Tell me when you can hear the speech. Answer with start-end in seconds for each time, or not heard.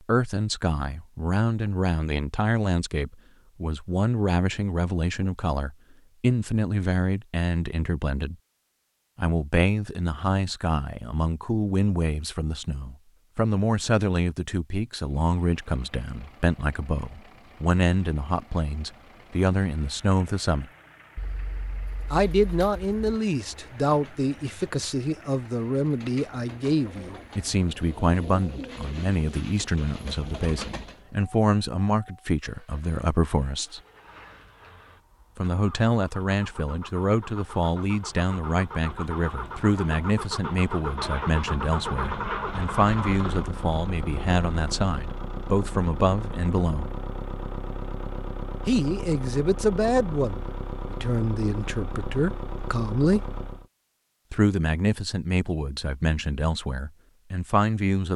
0.1-8.3, 9.2-20.6, 22.1-33.8, 35.4-46.9, 48.6-53.2, 54.3-58.1.